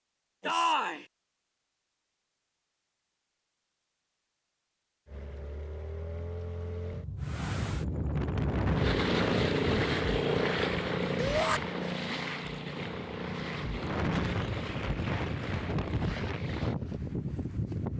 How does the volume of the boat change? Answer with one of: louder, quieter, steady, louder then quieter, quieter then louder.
louder then quieter.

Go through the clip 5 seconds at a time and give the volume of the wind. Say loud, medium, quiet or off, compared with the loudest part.
off, loud, loud, loud.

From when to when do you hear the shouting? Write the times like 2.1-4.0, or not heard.
0.4-1.1, 11.2-11.6.